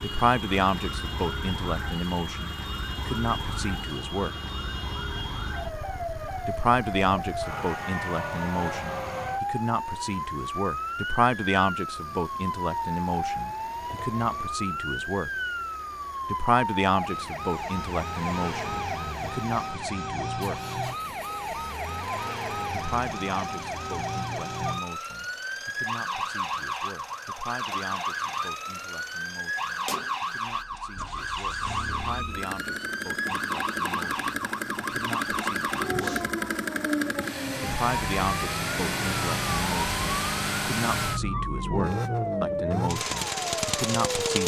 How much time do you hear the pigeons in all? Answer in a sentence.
The pigeons can't be heard in this clip.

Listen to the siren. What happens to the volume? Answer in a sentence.
The volume of the siren stays about the same.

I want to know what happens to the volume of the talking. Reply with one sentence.
The loudness of the talking goes down, then up.